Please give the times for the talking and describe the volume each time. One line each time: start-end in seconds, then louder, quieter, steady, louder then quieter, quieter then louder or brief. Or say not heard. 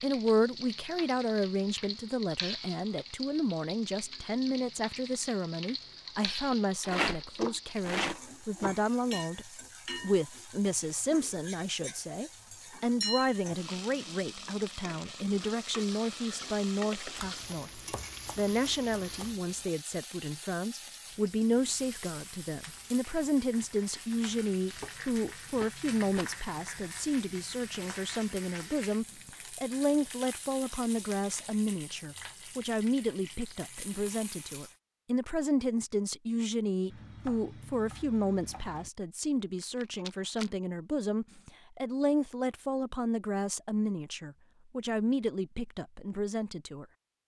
0.0-46.9 steady.